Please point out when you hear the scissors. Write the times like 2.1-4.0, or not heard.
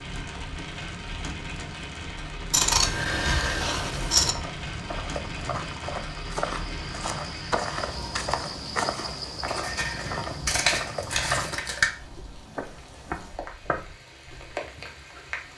2.5-4.3, 9.4-11.9.